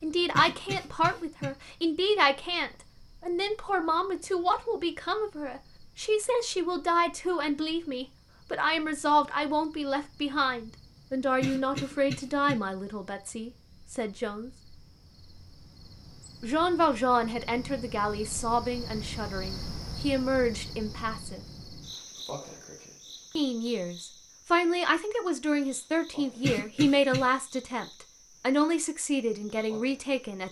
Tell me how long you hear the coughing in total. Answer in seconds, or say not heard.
3 s.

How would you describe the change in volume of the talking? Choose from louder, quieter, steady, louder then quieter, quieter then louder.
steady.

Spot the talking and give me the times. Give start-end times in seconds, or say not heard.
0.0-14.5, 16.4-21.4, 23.4-30.4.